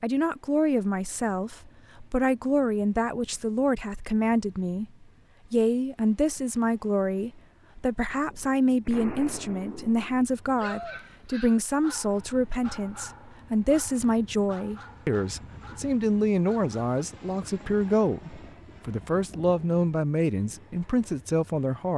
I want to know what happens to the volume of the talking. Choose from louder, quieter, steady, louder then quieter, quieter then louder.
steady.